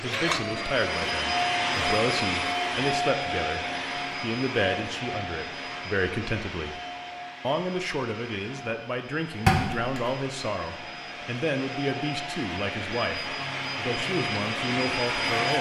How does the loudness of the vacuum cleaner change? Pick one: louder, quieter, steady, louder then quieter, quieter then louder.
quieter then louder.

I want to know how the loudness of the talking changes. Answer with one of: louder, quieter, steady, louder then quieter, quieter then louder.
steady.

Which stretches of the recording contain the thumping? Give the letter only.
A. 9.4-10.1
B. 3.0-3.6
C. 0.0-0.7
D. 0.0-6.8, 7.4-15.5
A.